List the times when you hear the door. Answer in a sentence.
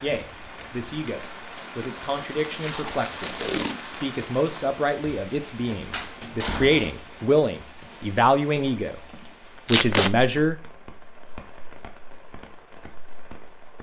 The door can be heard from 5.9 to 7.0 s.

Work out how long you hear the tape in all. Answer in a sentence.
The tape can be heard for 2 seconds in total.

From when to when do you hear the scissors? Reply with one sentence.
You can't hear the scissors here.